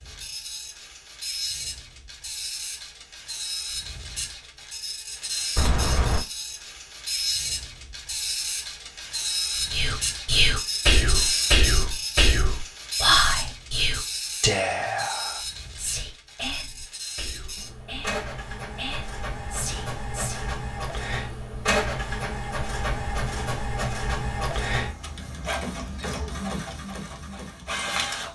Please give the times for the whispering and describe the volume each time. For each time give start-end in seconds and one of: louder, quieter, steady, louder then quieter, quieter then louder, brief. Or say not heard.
9.7-20.4 quieter.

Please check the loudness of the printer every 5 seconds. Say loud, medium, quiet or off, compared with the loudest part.
medium, loud, loud, medium, loud, loud.